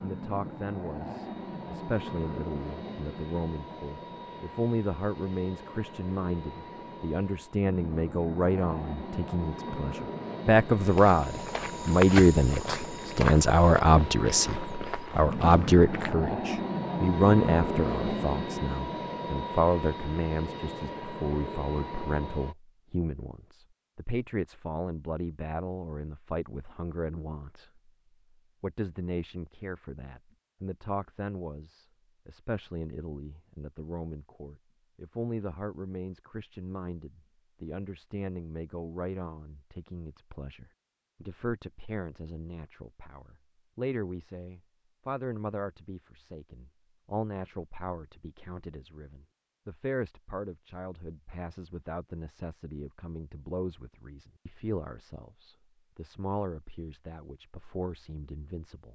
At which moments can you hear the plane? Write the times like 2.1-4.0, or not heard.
0.0-22.6.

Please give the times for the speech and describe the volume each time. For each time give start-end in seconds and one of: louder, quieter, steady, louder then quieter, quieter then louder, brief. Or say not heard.
0.0-27.9 louder then quieter
28.6-58.9 steady.